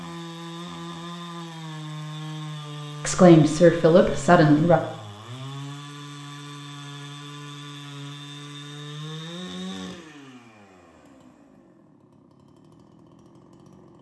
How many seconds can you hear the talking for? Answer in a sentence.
You can hear the talking for 2 seconds altogether.